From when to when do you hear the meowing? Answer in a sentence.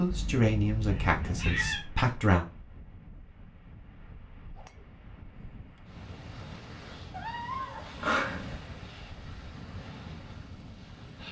You can hear the meowing from 0.1 to 1.9 s and from 7.1 to 8.6 s.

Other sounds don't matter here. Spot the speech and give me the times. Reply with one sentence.
You can hear the speech from 0.0 to 2.5 s.